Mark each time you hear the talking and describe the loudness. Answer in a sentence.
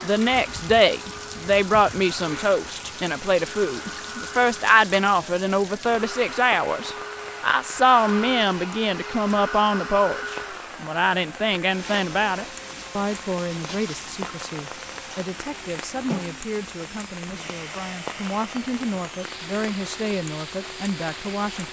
The talking can be heard from 0.0 to 21.6 s, getting quieter.